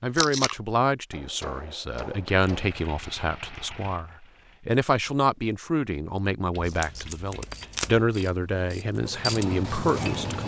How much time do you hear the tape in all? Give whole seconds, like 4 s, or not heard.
2 s.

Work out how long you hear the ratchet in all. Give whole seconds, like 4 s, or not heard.
4 s.